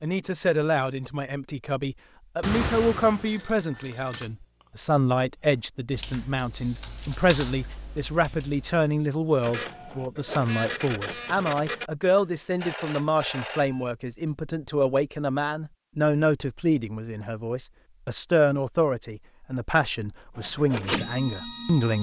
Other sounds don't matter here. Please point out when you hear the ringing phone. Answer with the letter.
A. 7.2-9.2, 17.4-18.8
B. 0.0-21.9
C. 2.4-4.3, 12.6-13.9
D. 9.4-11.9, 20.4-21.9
C.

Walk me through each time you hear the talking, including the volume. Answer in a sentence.
You can hear the talking from 0.0 to 21.9 s, at a steady volume.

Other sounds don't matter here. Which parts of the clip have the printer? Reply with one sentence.
You can hear the printer from 9.4 to 11.9 s and from 20.4 to 21.9 s.